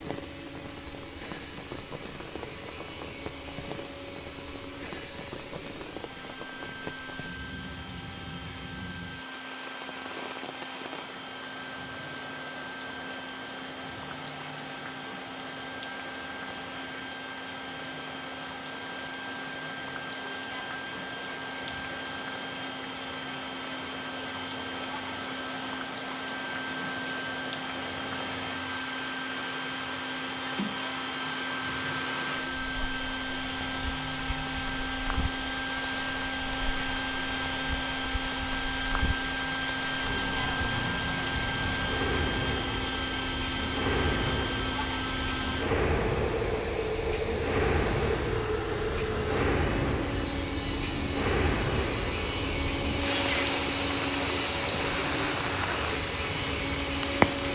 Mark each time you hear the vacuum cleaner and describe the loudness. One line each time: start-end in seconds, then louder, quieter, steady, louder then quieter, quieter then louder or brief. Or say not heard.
0.0-57.5 louder.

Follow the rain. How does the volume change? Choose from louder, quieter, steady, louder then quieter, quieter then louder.
louder.